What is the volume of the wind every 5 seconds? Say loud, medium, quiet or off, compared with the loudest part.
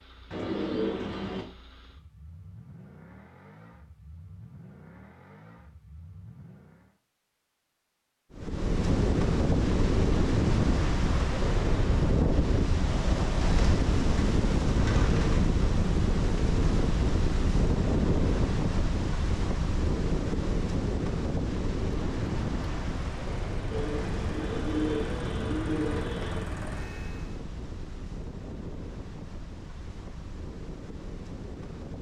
off, loud, loud, loud, medium, quiet, quiet.